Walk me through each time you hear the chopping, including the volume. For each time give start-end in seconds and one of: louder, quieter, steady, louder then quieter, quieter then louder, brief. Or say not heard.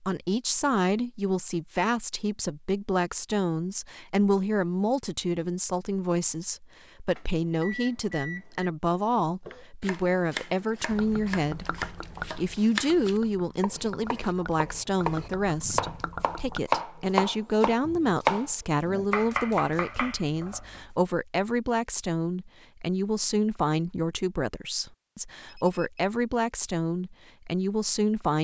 9.4-20.9 louder then quieter.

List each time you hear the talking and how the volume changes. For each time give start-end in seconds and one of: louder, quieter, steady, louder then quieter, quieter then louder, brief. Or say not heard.
0.0-28.3 steady.